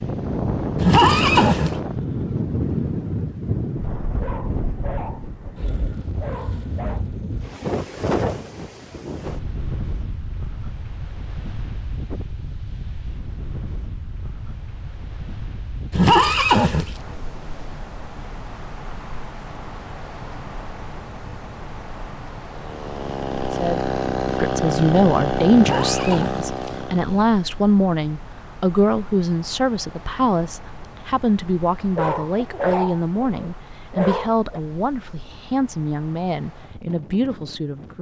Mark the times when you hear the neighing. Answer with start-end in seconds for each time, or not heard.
0.8-1.8, 15.9-16.9, 25.6-26.8.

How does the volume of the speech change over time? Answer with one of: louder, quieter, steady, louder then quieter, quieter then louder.
quieter.